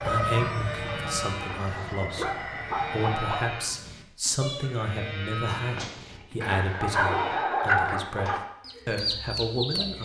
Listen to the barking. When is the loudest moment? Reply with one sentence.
The loudest moment of the barking is at 7 seconds.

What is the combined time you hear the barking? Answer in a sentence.
You can hear the barking for 4 seconds altogether.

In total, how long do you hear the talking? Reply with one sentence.
The talking can be heard for 10 seconds in total.